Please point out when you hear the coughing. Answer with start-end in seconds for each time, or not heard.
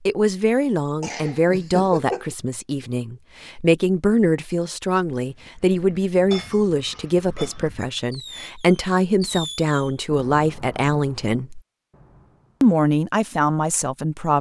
1.0-2.4.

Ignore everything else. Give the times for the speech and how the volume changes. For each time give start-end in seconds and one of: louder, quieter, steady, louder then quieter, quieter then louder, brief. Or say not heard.
0.1-11.6 steady
12.6-14.3 brief.